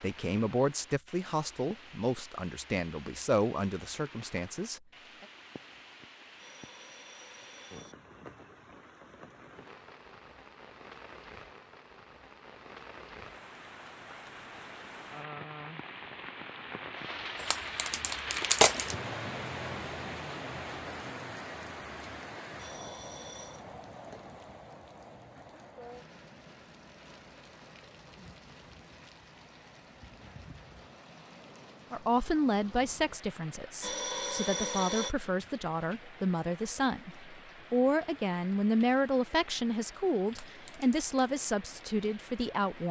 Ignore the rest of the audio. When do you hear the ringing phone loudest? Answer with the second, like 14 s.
35 s.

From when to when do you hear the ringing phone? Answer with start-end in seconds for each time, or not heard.
6.3-8.0, 22.6-23.6, 33.8-35.1.